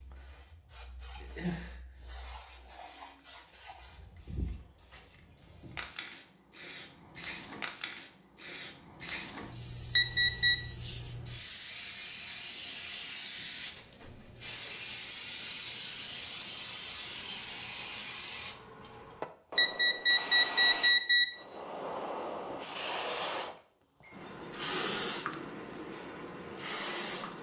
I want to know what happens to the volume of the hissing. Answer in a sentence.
The loudness of the hissing goes up.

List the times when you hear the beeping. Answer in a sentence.
You can hear the beeping from 9.9 to 10.6 s and from 19.6 to 21.2 s.